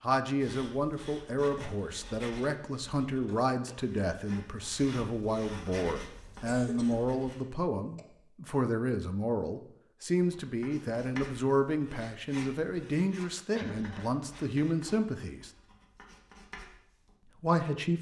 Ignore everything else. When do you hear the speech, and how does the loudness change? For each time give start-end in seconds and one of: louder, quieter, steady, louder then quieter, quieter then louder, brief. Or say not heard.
0.0-15.5 steady
17.4-17.9 brief.